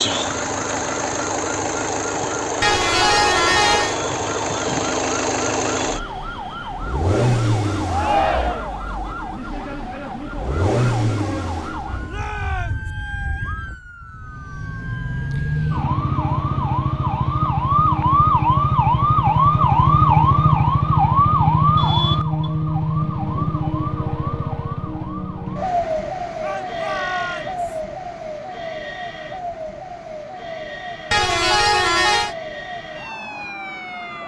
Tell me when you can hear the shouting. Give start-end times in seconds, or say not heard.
7.8-8.8, 12.1-12.9, 26.4-27.8.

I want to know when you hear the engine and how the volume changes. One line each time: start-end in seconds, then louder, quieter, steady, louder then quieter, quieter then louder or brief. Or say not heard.
0.0-12.3 steady.